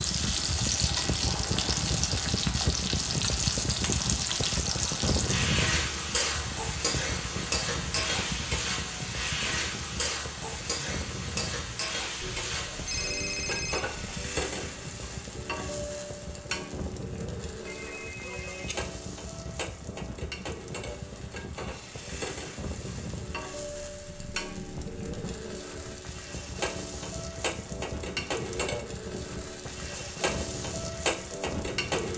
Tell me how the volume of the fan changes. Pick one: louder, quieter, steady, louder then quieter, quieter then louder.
quieter.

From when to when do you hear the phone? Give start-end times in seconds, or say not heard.
12.2-14.2, 17.6-18.8.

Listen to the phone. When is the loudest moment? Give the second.
13 s.